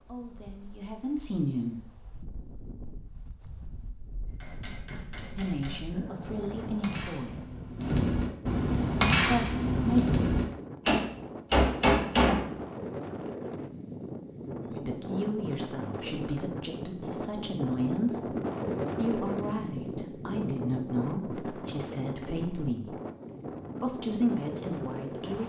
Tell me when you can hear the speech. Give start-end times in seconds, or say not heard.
0.1-1.8, 5.3-7.5, 9.2-10.1, 14.6-18.4, 18.9-22.9, 23.8-25.4.